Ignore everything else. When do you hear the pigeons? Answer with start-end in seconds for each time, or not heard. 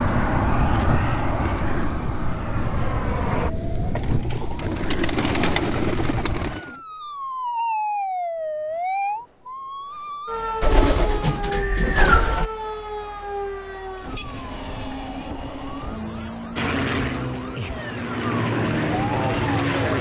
4.0-6.7, 10.6-12.5.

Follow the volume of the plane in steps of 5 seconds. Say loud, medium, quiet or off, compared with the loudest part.
loud, off, off, loud.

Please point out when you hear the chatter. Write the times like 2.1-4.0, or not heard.
not heard.